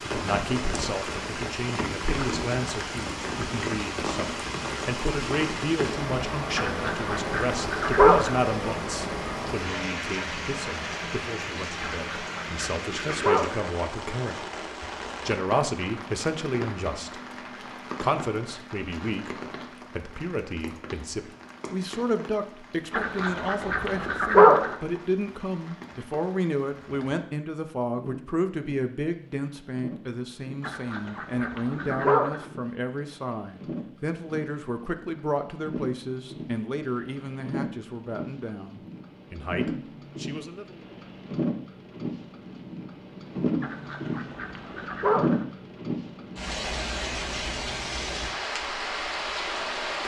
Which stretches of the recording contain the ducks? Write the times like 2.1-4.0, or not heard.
6.5-8.4, 11.8-13.7, 22.9-24.8, 30.6-32.5, 43.6-45.5.